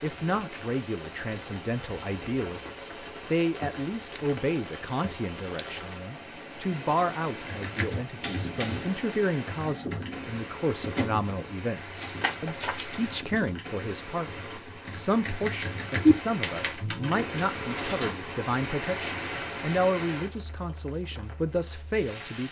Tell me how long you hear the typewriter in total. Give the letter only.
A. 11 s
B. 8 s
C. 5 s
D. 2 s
A.